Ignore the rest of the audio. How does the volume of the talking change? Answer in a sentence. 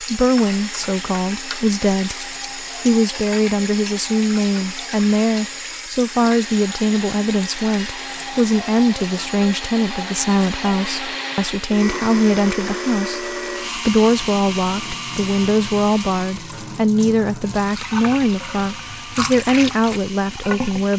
The volume of the talking stays about the same.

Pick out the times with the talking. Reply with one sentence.
The talking can be heard from 0.0 to 20.9 s.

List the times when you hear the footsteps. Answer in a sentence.
You can't hear the footsteps here.